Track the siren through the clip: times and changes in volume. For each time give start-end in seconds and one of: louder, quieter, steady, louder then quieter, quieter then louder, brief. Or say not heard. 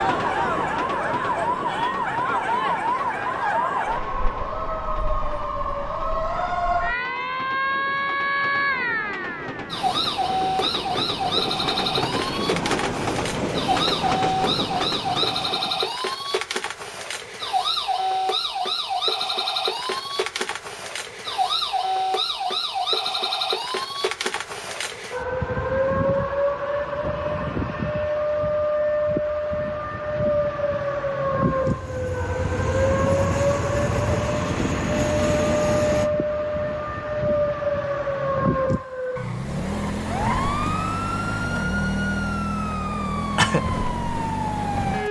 0.0-45.0 steady.